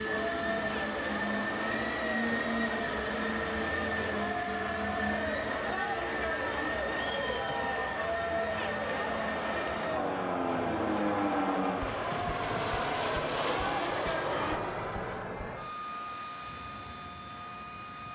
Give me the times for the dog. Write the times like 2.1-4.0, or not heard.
not heard.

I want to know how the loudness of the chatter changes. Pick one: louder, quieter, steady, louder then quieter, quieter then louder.
steady.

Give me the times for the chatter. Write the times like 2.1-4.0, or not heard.
0.0-14.6.